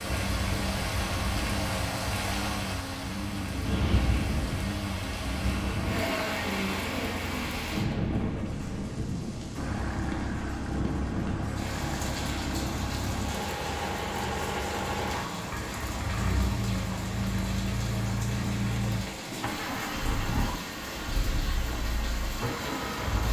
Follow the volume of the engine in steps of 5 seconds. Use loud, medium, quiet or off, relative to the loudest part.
medium, medium, loud, loud, loud.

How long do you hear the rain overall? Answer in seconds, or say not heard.
23 s.